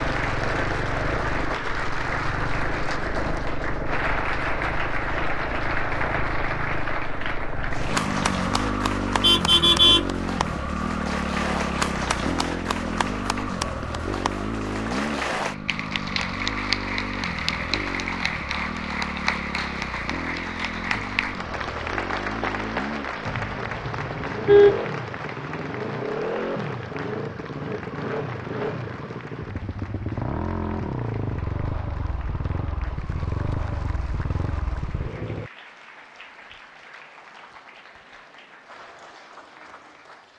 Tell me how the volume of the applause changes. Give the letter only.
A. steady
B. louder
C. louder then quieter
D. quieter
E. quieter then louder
D.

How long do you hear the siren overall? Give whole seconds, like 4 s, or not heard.
not heard.